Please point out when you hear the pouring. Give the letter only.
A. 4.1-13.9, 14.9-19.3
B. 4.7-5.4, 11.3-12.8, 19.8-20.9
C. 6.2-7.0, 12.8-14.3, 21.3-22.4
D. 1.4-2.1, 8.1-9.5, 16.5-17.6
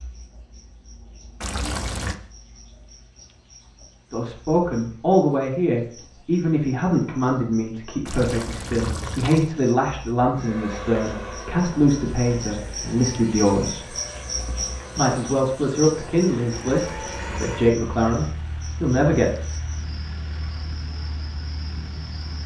D.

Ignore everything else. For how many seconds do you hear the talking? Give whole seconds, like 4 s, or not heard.
14 s.